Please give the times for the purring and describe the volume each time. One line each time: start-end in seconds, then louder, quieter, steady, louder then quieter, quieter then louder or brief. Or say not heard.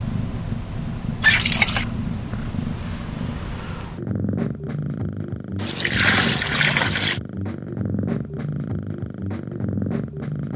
0.0-10.5 steady.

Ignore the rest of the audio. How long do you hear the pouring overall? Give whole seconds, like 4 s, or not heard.
2 s.